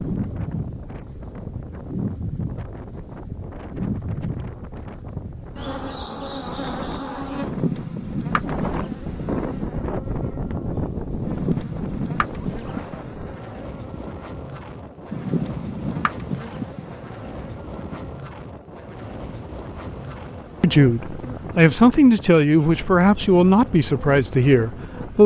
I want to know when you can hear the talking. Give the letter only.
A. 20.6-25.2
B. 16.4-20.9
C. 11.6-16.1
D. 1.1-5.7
A.